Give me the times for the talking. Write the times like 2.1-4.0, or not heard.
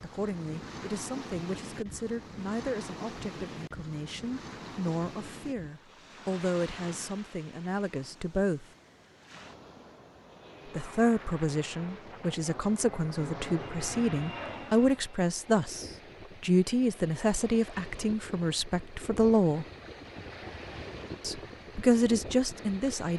0.0-8.7, 10.7-19.6, 21.2-23.1.